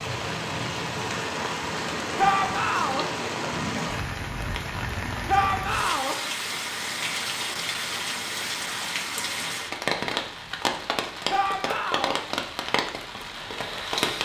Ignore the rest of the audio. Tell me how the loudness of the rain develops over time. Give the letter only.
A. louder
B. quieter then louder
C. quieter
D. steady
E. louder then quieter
D.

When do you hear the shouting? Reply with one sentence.
You can hear the shouting from 2.1 to 3.0 s, from 5.2 to 6.2 s and from 11.3 to 12.2 s.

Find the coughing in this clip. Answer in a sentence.
The coughing can't be heard in this clip.